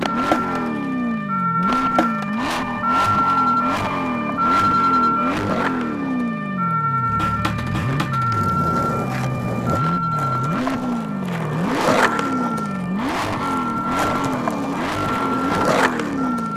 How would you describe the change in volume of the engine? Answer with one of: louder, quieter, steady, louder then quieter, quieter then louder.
steady.